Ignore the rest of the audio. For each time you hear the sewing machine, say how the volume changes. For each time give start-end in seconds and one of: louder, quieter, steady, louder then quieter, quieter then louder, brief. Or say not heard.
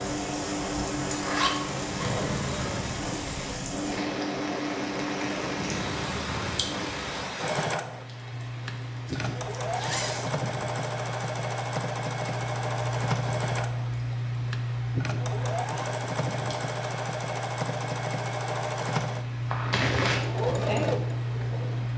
0.0-21.9 steady.